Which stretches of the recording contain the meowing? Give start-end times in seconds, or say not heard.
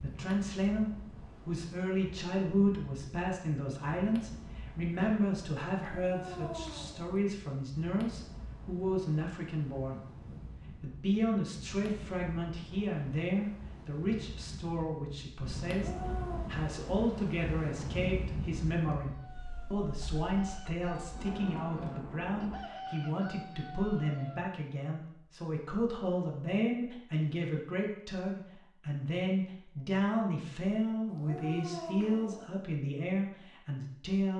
5.8-7.2, 15.7-16.5, 31.1-32.5.